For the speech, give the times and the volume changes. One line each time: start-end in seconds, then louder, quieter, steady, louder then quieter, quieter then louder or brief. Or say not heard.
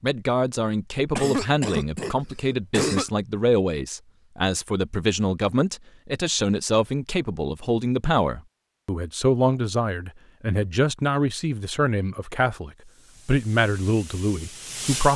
0.0-15.1 steady.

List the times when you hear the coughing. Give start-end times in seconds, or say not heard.
1.1-3.0.